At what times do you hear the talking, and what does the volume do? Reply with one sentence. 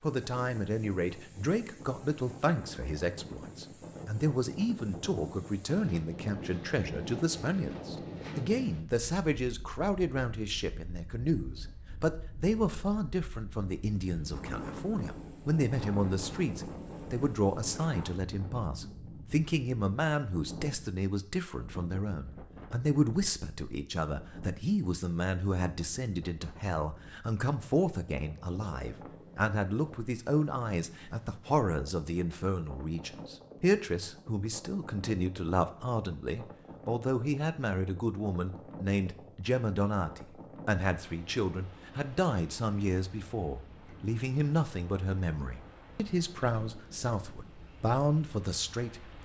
You can hear the talking from 0.0 to 49.1 s, at a steady volume.